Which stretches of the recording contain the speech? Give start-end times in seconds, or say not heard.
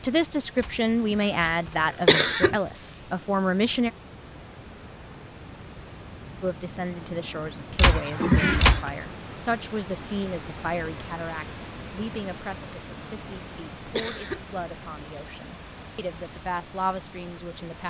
0.0-3.9, 6.4-17.8.